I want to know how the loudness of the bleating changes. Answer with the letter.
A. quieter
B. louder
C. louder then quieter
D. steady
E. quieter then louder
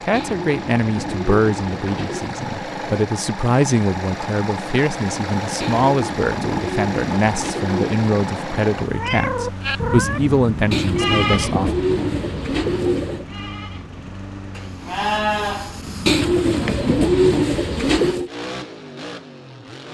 E.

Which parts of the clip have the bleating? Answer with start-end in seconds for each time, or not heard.
9.6-16.1.